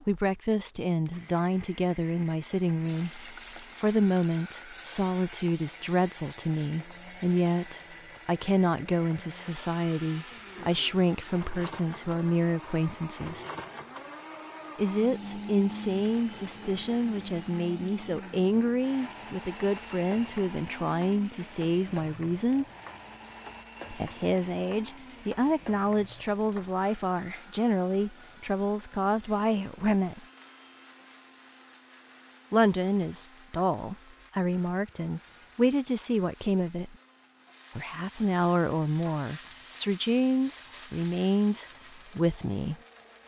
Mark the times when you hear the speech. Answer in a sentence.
The speech can be heard from 0.1 to 13.4 s, from 14.8 to 22.6 s, from 23.9 to 30.2 s, from 32.5 to 37.0 s and from 37.8 to 42.8 s.